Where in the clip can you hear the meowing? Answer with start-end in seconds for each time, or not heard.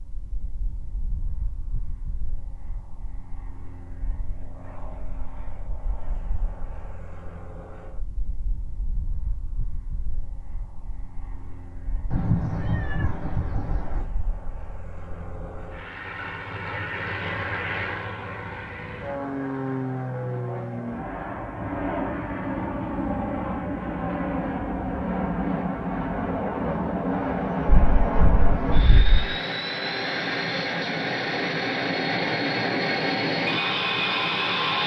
12.1-14.1, 27.6-29.4.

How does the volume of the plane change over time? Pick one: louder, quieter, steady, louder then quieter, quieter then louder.
louder.